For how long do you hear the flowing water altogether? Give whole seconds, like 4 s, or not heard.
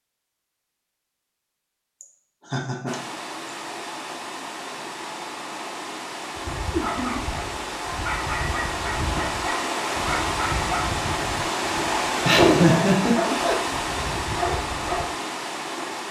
13 s.